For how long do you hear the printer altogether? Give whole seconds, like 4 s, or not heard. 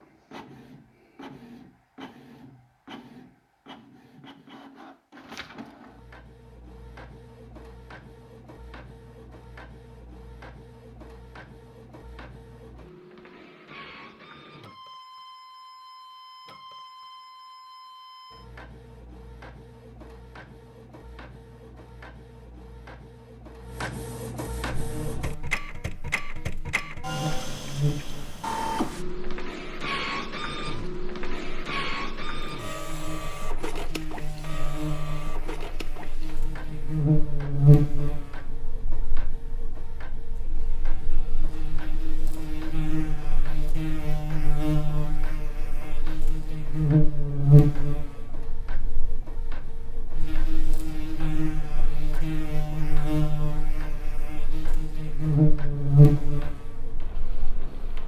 58 s.